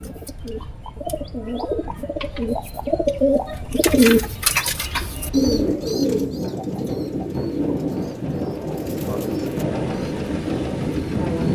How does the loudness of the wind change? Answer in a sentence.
The loudness of the wind goes up.